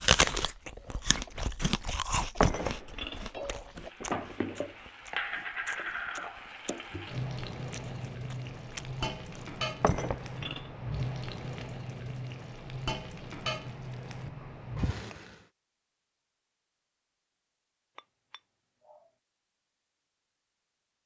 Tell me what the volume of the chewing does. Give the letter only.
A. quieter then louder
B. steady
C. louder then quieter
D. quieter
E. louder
D.